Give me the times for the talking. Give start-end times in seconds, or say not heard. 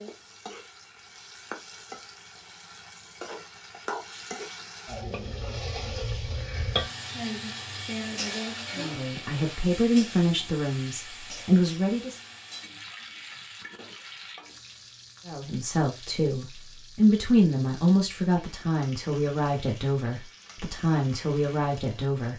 8.8-12.2, 15.2-22.3.